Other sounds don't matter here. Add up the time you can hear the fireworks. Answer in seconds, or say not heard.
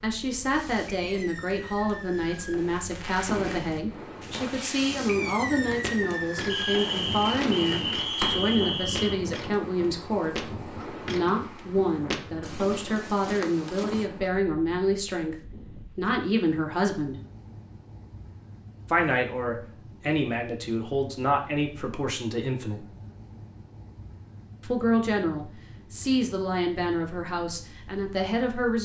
8 s.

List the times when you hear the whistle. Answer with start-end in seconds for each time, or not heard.
6.5-9.2.